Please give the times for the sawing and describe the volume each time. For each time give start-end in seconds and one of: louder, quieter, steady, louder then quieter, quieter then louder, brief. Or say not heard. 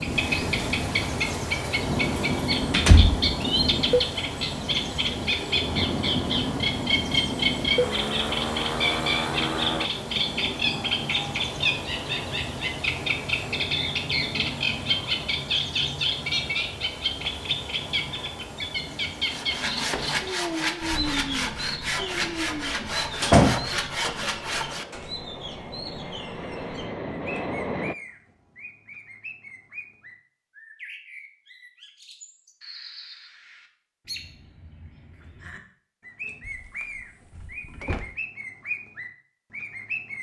19.2-25.1 steady.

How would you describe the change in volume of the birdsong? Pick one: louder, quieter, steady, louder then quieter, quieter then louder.
quieter.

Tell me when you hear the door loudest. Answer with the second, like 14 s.
23 s.